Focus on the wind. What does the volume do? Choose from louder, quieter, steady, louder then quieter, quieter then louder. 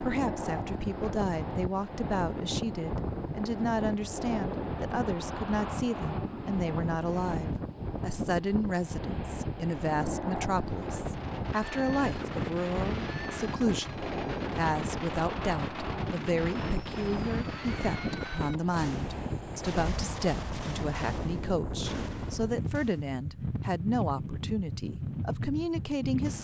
steady.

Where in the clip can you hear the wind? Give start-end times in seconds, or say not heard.
0.0-26.3.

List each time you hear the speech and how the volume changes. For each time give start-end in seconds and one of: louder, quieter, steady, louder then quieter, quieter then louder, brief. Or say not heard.
0.0-26.3 steady.